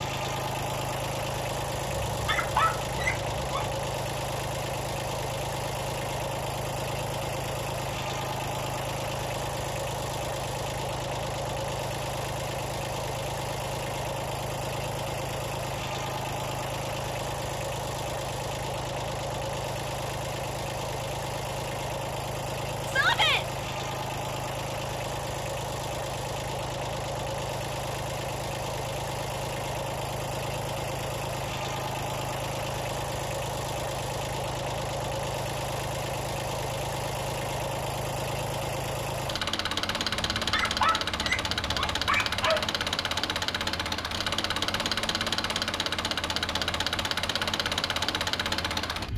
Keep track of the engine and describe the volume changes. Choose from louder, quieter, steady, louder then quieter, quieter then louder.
steady.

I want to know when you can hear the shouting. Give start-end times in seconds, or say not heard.
22.9-23.4.